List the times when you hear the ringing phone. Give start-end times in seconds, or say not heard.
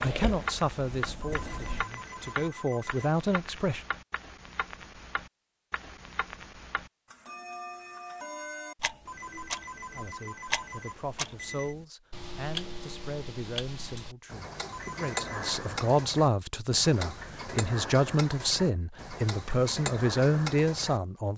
1.2-3.1, 9.1-11.8, 14.7-15.6.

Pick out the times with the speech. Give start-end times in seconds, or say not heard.
0.0-3.8, 9.9-21.3.